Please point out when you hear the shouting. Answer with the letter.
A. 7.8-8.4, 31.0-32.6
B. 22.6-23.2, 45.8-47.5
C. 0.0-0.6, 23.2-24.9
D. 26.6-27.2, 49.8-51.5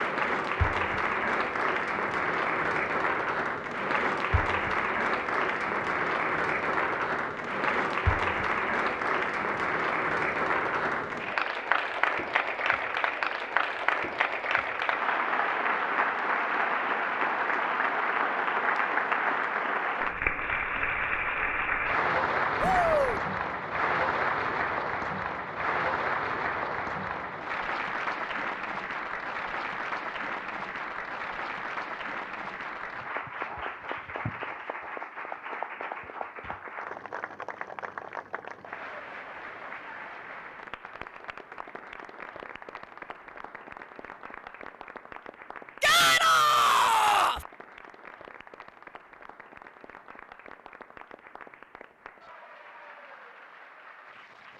B.